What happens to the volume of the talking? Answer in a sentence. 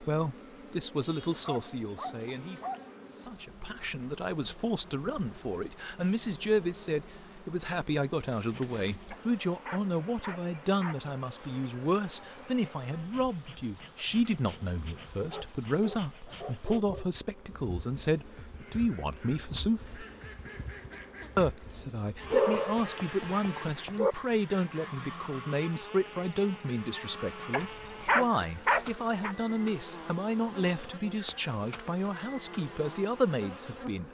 The volume of the talking stays about the same.